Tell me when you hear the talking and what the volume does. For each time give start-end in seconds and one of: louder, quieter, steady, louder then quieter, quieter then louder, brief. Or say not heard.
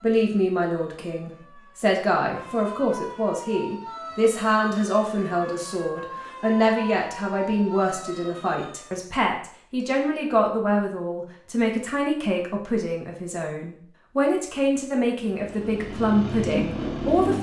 0.0-17.3 steady.